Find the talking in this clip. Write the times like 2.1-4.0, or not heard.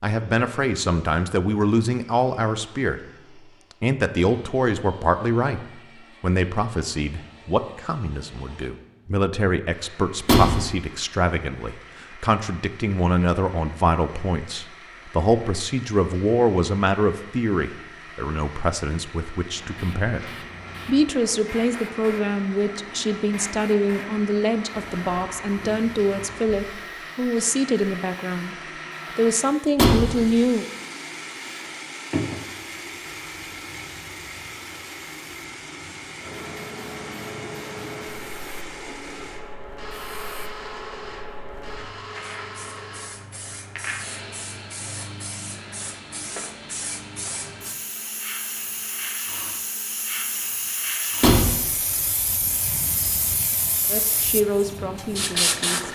0.0-3.0, 3.8-28.6, 29.1-30.6, 53.9-55.8.